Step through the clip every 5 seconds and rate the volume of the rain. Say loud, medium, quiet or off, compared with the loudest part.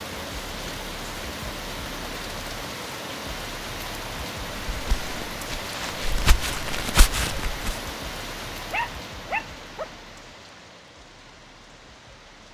loud, loud, quiet.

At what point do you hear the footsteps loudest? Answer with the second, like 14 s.
7 s.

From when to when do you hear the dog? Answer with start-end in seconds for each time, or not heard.
8.7-9.9.